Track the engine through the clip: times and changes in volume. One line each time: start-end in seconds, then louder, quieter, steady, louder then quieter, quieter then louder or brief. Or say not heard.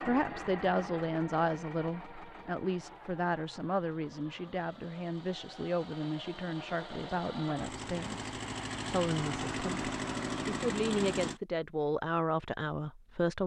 0.0-11.4 quieter then louder.